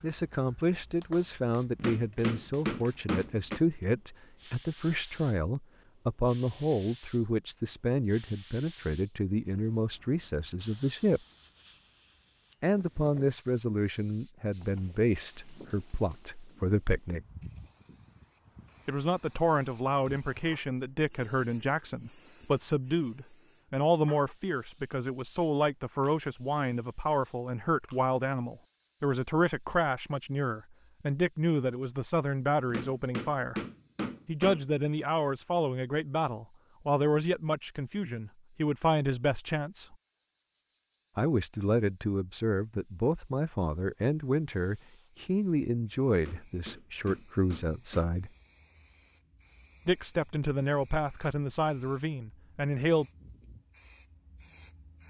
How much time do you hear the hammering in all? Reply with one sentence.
You can hear the hammering for 6 seconds altogether.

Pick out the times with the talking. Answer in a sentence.
You can hear the talking from 0.0 to 11.2 s, from 12.6 to 17.2 s, from 18.9 to 33.6 s, from 34.2 to 40.0 s, from 41.1 to 48.3 s and from 49.9 to 53.0 s.